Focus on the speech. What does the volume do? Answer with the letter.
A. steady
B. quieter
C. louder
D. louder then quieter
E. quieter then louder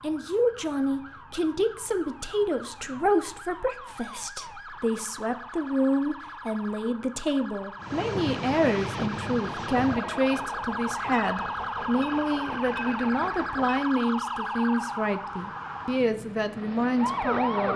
A.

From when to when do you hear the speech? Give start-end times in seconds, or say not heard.
0.0-17.7.